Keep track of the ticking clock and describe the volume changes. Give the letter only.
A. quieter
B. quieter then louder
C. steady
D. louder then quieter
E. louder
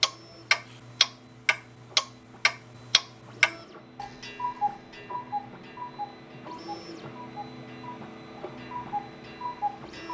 A.